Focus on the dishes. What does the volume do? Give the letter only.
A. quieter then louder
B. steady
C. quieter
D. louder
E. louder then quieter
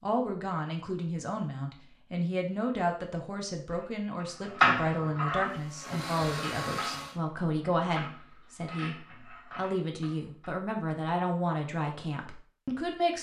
C.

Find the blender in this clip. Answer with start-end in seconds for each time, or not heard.
5.3-7.2.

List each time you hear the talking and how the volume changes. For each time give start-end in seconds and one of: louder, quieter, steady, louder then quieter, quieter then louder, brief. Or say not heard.
0.0-13.1 steady.